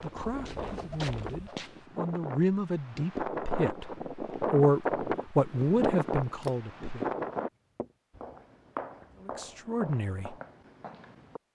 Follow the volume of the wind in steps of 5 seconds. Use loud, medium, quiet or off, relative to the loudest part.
loud, loud, off.